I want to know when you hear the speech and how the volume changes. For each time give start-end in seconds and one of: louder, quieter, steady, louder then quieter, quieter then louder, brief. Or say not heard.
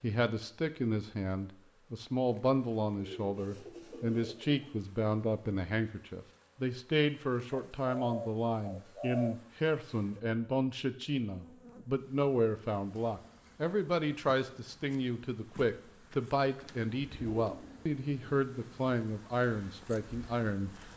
0.0-20.7 steady.